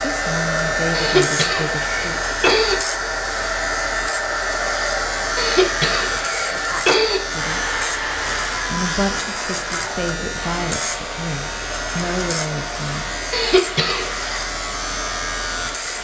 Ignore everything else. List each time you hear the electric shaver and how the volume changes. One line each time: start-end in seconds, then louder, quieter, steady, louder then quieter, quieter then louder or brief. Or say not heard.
0.0-15.9 steady.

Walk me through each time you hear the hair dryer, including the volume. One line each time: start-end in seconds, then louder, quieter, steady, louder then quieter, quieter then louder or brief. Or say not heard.
0.0-15.9 quieter.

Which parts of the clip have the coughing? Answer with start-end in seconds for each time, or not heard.
0.9-2.8, 5.3-7.2, 13.3-14.2.